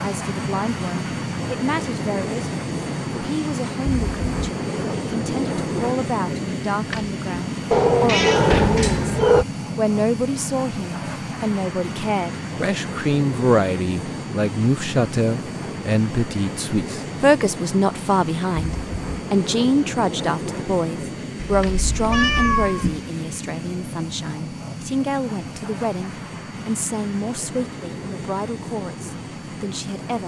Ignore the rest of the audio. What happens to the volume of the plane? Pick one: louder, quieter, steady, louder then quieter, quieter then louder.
quieter.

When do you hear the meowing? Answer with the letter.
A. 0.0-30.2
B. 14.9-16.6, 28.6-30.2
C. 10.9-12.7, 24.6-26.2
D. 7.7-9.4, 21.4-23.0
D.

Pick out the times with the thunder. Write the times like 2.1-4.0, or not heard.
not heard.